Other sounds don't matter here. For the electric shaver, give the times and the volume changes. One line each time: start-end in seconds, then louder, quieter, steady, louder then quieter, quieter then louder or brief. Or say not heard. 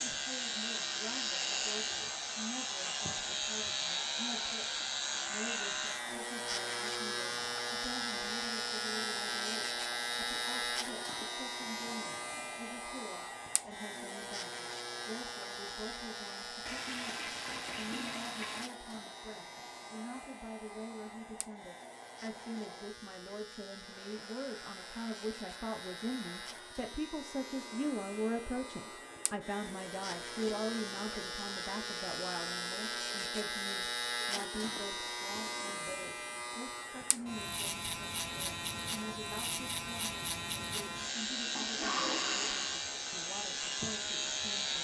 0.0-44.8 quieter then louder.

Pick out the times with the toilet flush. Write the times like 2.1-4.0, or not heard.
16.6-18.7, 41.5-42.8.